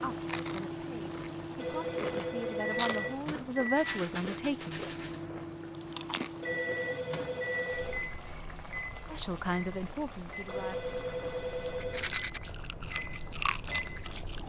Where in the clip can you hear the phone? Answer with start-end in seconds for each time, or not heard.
1.6-3.2, 6.4-8.1, 10.4-12.2.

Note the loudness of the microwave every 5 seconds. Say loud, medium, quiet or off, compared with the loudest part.
loud, loud, medium.